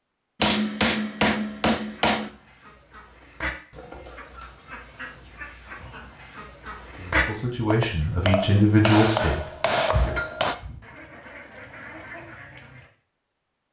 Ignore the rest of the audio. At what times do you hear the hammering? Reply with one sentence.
You can hear the hammering from 0.4 to 2.3 s and from 7.7 to 10.6 s.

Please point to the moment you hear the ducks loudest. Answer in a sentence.
The volume of the ducks peaks at 7 seconds.